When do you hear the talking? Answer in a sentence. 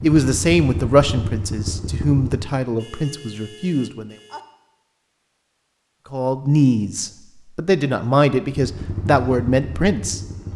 You can hear the talking from 0.0 to 4.2 s and from 6.1 to 10.2 s.